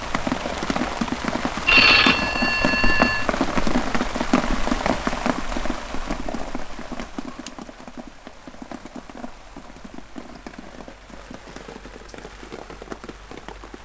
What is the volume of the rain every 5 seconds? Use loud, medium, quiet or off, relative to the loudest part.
loud, medium, quiet.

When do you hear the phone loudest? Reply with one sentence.
The loudest moment of the phone is at 2 seconds.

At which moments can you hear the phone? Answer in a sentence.
You can hear the phone from 1.6 to 3.2 s.